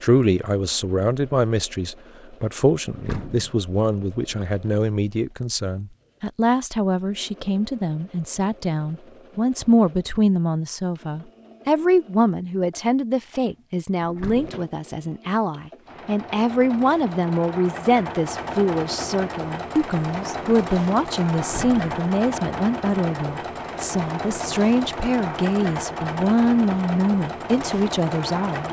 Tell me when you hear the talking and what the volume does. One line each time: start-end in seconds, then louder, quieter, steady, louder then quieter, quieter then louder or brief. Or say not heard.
0.0-28.6 steady.